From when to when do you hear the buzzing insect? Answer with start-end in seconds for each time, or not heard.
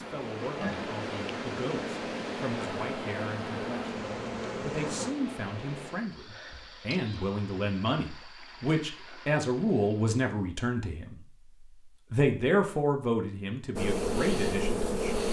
0.0-5.2, 13.8-15.2.